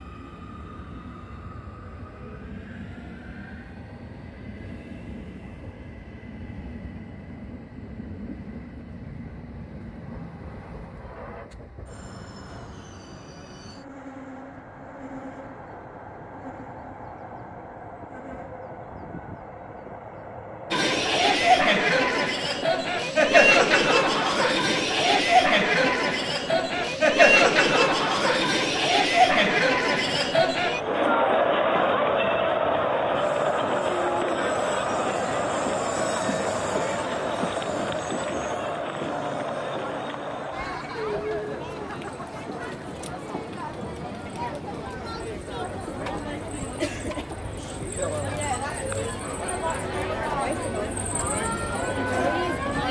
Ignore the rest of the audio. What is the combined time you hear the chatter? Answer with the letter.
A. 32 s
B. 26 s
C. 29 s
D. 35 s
A.